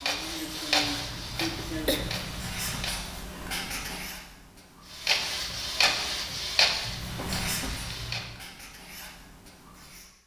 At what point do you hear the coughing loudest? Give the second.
2 s.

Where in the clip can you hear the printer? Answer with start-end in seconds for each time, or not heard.
0.0-3.4, 4.9-8.2.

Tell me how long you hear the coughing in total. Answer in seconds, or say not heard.
3 s.